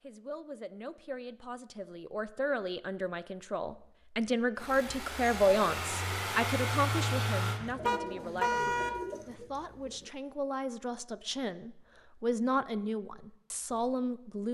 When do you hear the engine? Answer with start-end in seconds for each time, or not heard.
4.5-7.6.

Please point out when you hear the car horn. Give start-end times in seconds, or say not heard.
7.8-8.9.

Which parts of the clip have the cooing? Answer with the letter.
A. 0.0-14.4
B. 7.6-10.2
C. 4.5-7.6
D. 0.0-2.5
B.